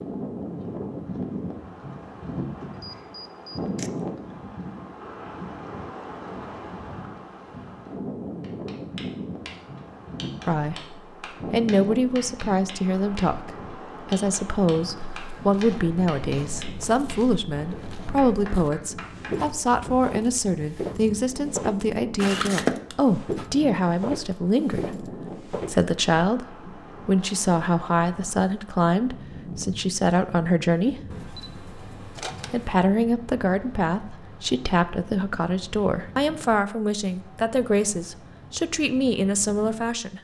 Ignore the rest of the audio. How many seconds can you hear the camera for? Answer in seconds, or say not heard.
4 s.